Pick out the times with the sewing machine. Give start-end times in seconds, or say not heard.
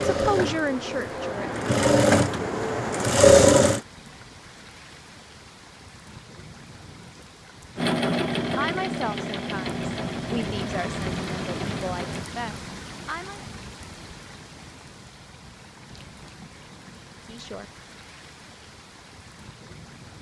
0.0-3.8, 7.8-12.2.